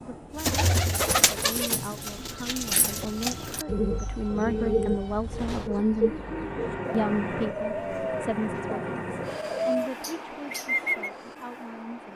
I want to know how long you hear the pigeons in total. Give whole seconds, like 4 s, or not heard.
11 s.